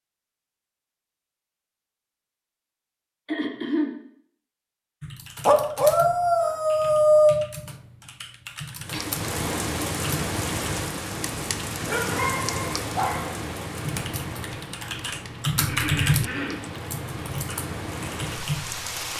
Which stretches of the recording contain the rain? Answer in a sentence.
You can hear the rain from 8.8 to 19.1 s.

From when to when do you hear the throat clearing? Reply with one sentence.
The throat clearing can be heard from 3.2 to 4.0 s, from 8.9 to 9.7 s and from 15.6 to 16.7 s.